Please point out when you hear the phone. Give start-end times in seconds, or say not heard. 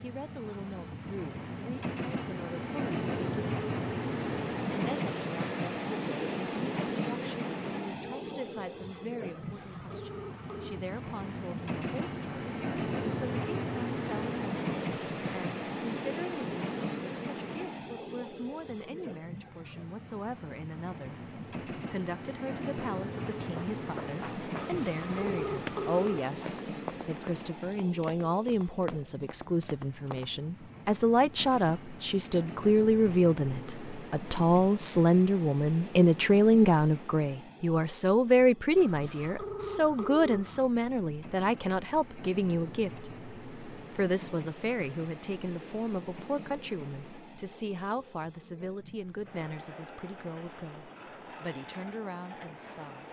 9.2-10.8, 24.6-26.2, 38.8-40.6.